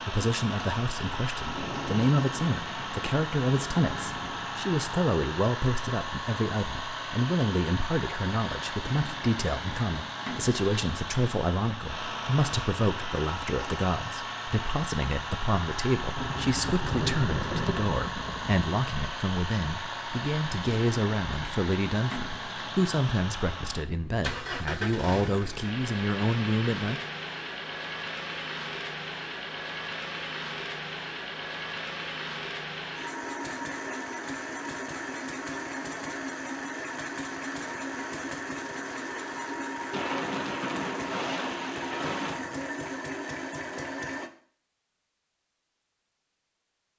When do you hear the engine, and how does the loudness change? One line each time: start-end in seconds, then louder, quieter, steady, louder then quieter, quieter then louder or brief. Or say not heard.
0.0-44.3 steady.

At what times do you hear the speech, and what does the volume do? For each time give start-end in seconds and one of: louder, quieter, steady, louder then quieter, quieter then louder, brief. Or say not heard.
0.0-27.0 steady.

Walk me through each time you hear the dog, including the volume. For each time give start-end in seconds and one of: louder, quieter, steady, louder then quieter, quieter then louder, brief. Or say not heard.
not heard.